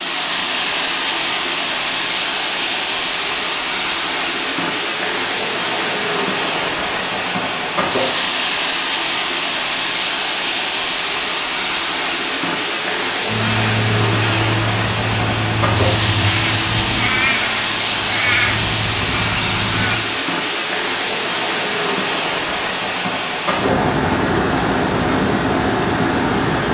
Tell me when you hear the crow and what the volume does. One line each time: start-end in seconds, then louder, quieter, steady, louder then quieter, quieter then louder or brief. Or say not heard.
13.2-20.0 steady.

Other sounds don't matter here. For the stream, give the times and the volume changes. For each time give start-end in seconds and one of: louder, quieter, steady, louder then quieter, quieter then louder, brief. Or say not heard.
0.0-26.7 steady.